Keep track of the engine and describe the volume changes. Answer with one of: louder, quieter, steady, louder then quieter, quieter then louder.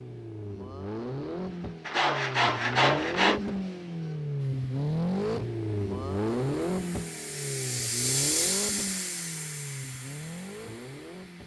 louder then quieter.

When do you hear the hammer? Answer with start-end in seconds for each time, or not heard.
not heard.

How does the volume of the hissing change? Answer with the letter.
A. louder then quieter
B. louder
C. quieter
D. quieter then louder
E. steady
A.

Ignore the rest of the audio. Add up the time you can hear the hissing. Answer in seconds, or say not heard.
7 s.